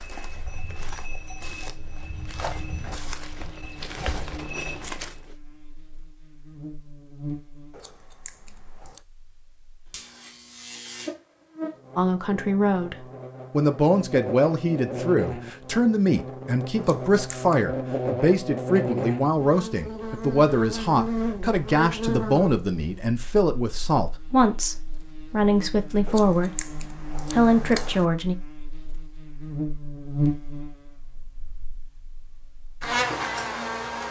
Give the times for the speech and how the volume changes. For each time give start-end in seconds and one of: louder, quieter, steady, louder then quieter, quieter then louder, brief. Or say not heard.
11.9-28.4 steady.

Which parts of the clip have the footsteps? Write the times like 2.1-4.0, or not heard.
0.0-5.2.